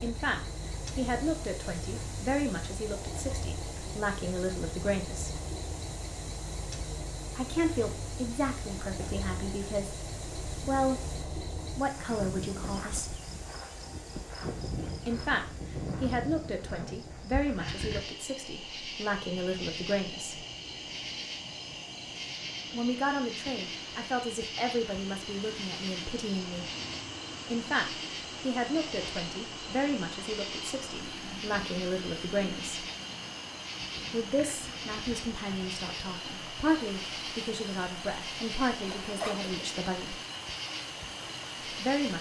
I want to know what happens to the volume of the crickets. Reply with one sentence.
The volume of the crickets stays about the same.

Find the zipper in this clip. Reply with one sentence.
You can hear the zipper from 38.8 to 39.6 s.